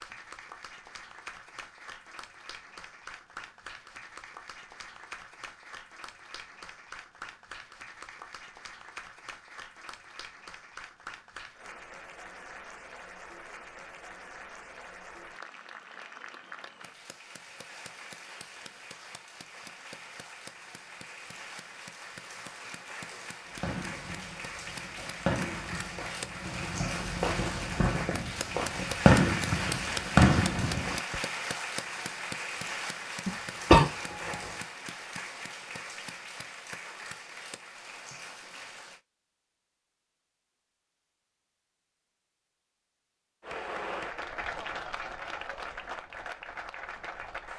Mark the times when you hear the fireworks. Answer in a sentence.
The fireworks can be heard from 23.5 to 31.2 s.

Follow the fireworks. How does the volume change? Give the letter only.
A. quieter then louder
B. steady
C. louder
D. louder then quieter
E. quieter
C.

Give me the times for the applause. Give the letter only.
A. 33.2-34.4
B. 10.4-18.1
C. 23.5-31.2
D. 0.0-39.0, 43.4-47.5
D.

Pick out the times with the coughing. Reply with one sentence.
You can hear the coughing from 33.2 to 34.4 s.